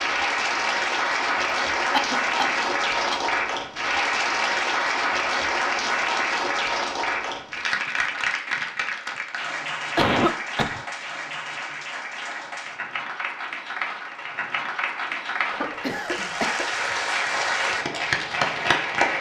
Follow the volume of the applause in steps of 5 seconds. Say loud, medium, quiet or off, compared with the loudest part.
loud, loud, medium, loud.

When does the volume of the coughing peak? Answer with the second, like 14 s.
10 s.